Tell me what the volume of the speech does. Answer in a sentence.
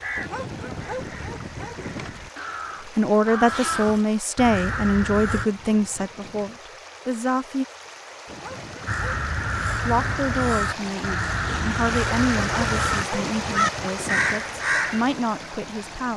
The volume of the speech goes down.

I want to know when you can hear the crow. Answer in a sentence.
You can hear the crow from 0.0 to 5.5 s and from 8.8 to 15.1 s.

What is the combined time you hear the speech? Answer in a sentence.
You can hear the speech for 11 seconds altogether.